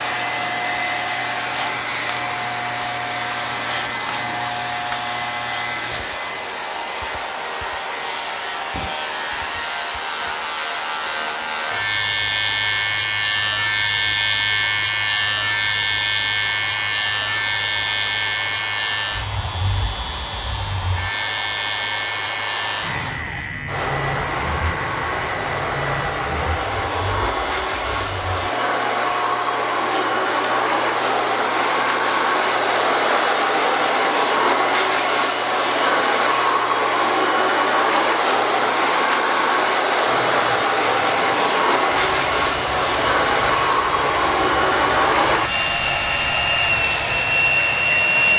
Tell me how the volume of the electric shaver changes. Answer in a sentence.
The volume of the electric shaver goes up, then down.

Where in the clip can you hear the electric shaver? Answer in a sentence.
You can hear the electric shaver from 0.0 to 48.3 s.